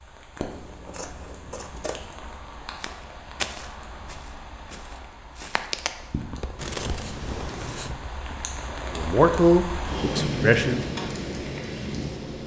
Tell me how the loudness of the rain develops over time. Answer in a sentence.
The volume of the rain goes up.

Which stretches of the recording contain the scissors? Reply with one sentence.
The scissors can be heard from 0.5 to 2.1 s and from 6.5 to 7.9 s.